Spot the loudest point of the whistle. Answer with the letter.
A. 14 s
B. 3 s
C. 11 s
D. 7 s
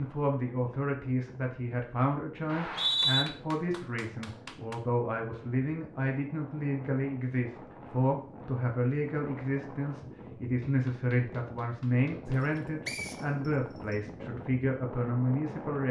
B.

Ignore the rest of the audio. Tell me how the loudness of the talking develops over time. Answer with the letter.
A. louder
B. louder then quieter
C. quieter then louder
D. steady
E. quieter
D.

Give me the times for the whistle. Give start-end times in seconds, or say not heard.
2.5-3.2, 12.8-13.9.